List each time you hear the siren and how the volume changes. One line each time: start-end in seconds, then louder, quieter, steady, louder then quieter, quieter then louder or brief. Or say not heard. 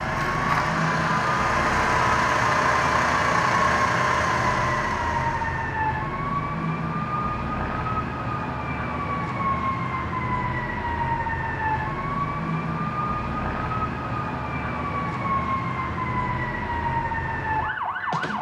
0.0-18.3 steady.